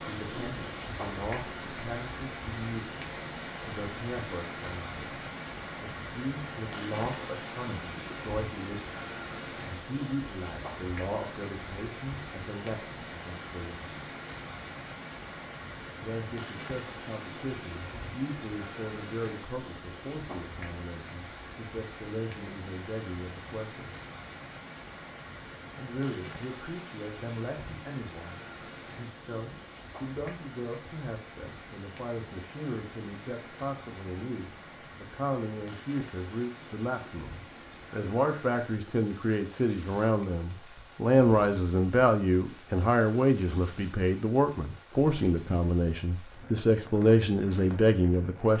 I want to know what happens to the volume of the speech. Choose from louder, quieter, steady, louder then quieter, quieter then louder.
louder.